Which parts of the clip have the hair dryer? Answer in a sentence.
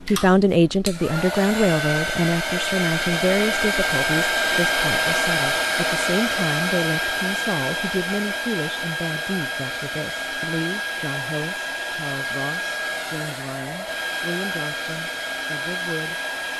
You can hear the hair dryer from 0.0 to 16.5 s.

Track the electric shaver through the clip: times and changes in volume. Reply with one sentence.
You can't hear the electric shaver here.